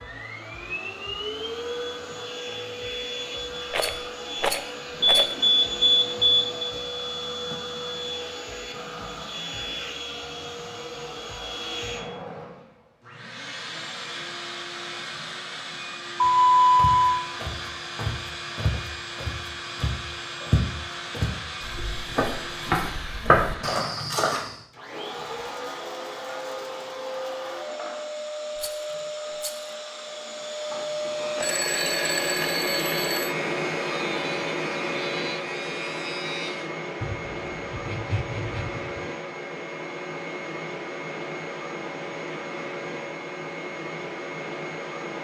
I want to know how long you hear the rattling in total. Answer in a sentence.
You can hear the rattling for 3 seconds altogether.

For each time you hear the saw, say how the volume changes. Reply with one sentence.
You can hear the saw from 31.2 to 38.9 s, at a steady volume.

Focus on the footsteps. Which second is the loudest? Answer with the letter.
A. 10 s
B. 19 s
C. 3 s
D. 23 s
D.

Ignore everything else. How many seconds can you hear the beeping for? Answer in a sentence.
You can hear the beeping for 5 seconds altogether.